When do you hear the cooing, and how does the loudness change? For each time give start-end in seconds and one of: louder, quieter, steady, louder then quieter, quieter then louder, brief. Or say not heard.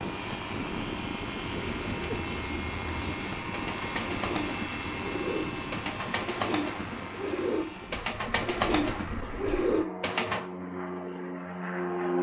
1.5-10.4 louder.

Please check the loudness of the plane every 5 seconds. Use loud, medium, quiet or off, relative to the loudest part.
loud, medium, loud.